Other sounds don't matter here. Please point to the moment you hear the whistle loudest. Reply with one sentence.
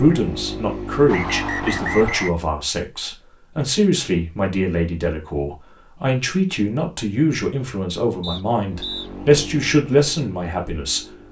The volume of the whistle peaks at 2 seconds.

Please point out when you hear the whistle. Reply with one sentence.
The whistle can be heard from 1.1 to 2.3 s and from 8.2 to 9.1 s.